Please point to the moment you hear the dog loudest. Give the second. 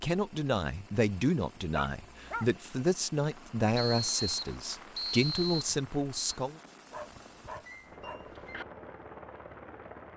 2 s.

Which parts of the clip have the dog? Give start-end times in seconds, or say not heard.
1.7-2.5, 6.9-8.7.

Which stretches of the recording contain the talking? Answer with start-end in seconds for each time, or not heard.
0.0-6.5.